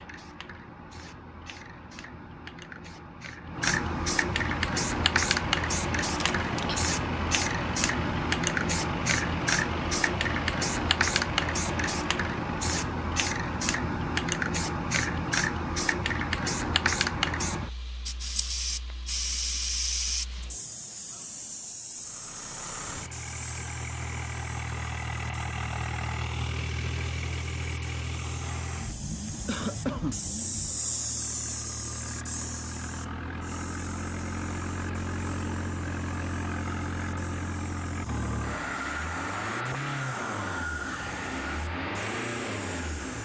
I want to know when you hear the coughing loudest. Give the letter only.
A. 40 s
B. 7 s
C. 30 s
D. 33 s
C.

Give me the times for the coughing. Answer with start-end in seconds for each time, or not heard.
6.2-6.8, 29.4-30.2.